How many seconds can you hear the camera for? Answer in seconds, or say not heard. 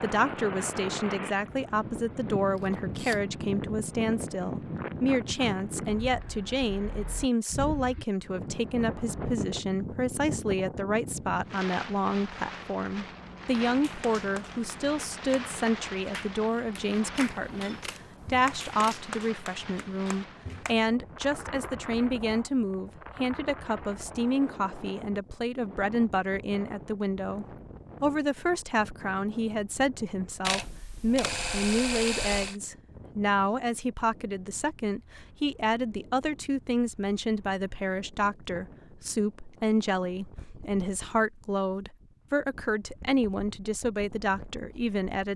5 s.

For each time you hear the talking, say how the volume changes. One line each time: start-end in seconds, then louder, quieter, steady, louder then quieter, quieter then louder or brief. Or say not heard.
0.0-45.3 steady.